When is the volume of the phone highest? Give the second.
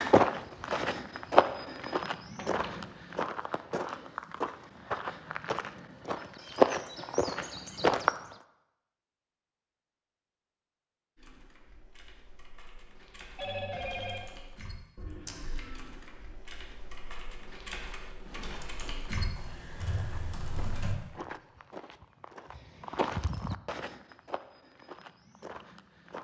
14 s.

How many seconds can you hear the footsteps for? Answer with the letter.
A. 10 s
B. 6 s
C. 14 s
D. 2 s
C.